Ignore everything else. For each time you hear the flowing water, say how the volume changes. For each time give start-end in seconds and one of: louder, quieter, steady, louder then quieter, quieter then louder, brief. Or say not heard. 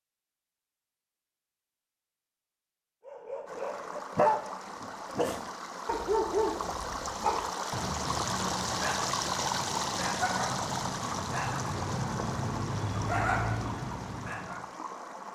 3.5-15.3 louder then quieter.